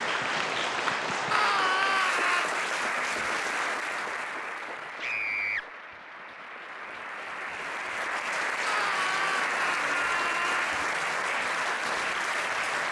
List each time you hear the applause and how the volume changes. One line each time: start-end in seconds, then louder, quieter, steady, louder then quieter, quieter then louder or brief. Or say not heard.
0.0-12.8 quieter then louder.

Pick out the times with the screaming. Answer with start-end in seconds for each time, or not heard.
1.3-2.5, 5.0-5.7, 8.7-10.7.